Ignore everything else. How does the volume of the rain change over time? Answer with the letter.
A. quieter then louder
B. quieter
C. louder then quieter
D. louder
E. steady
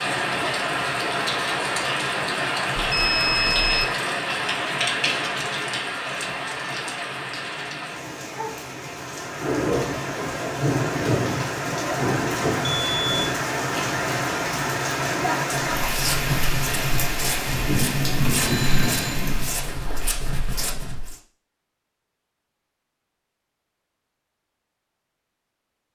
E.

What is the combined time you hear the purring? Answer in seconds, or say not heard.
not heard.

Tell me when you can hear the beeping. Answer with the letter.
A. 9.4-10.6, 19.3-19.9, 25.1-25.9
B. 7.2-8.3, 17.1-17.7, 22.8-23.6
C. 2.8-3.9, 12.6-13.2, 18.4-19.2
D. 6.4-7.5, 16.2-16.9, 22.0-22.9
C.